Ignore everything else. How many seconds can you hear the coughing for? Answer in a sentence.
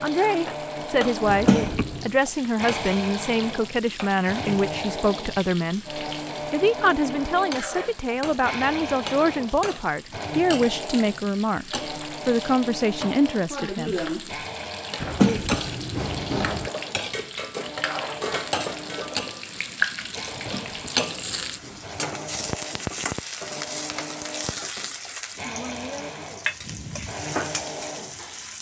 You can hear the coughing for 4 seconds altogether.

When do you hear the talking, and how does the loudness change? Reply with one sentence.
The talking can be heard from 0.0 to 14.1 s, at a steady volume.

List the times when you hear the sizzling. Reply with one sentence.
You can hear the sizzling from 0.0 to 28.5 s.